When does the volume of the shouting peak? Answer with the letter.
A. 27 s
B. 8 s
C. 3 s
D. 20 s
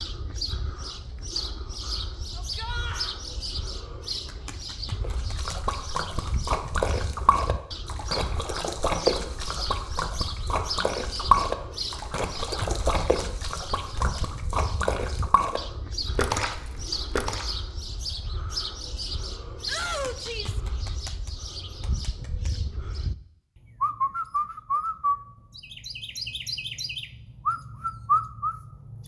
D.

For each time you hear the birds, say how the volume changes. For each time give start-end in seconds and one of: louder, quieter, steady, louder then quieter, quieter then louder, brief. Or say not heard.
0.0-29.0 louder.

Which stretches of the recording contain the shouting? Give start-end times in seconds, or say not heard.
2.4-3.1, 19.6-20.6.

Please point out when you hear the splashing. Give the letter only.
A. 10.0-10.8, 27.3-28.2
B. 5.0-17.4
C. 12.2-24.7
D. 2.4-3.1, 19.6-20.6
B.